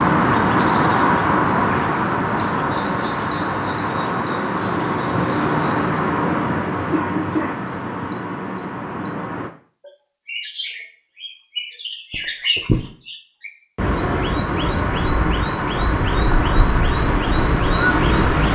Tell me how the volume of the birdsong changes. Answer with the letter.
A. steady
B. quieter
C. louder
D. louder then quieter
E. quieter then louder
E.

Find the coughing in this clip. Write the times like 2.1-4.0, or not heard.
6.9-7.7, 12.1-12.9.